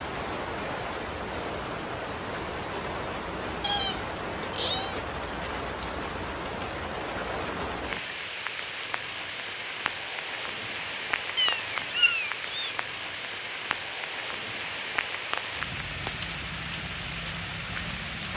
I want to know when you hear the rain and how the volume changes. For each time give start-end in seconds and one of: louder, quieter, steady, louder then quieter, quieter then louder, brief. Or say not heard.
0.0-18.3 steady.